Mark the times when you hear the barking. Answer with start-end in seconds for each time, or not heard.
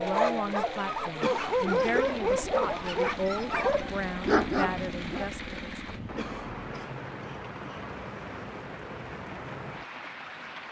0.0-5.3.